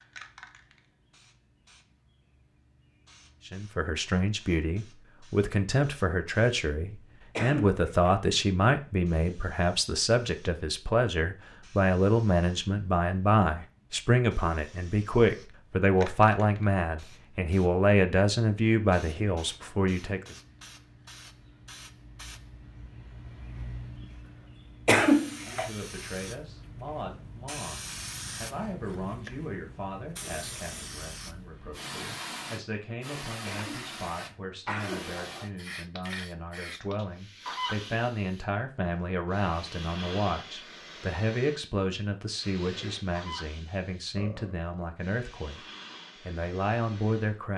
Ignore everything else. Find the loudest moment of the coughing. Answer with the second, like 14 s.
25 s.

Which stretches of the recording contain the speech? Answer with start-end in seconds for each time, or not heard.
3.5-20.4, 25.4-45.6, 46.2-47.5.